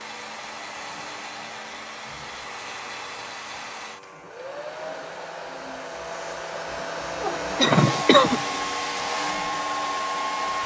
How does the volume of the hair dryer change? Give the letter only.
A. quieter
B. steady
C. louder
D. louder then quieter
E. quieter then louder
C.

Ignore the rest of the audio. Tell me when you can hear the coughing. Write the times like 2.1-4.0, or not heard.
7.5-8.4.